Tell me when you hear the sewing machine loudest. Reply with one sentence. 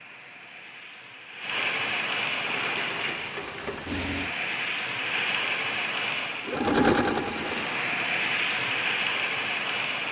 The loudest moment of the sewing machine is at 7 seconds.